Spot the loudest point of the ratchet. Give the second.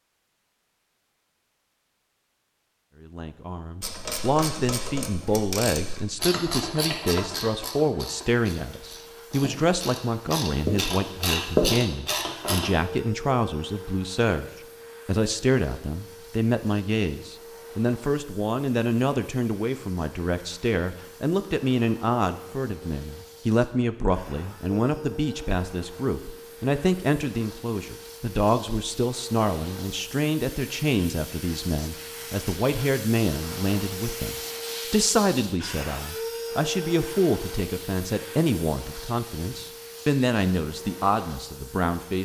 12 s.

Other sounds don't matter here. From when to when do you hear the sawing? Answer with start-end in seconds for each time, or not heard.
not heard.